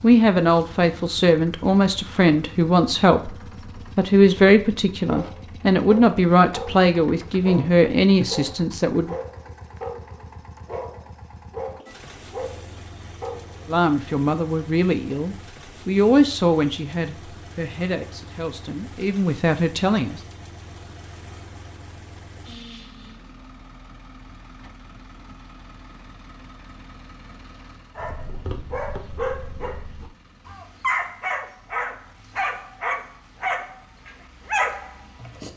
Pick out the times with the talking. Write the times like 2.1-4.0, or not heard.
0.0-3.4, 4.0-9.2, 13.7-20.2.